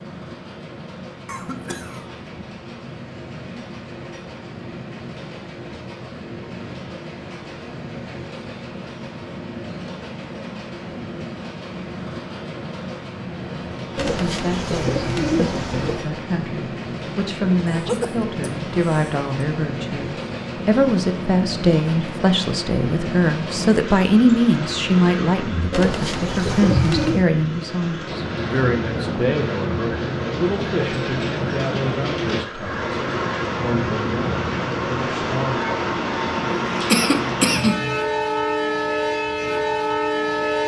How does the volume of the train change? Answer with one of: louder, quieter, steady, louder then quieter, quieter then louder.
louder.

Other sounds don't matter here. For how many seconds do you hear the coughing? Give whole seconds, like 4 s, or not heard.
3 s.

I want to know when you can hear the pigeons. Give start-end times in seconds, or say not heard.
13.9-16.1, 25.7-27.2.